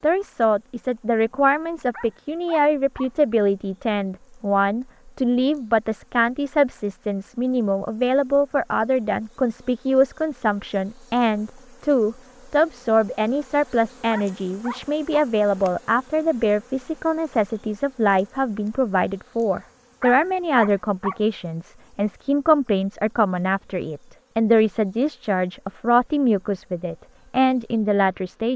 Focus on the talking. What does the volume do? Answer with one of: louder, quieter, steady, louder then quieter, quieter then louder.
steady.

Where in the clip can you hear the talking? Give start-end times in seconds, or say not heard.
0.0-28.5.